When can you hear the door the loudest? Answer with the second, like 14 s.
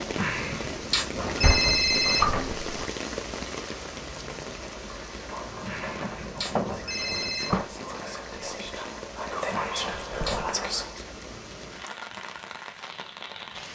2 s.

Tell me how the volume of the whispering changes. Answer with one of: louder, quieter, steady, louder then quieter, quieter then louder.
louder.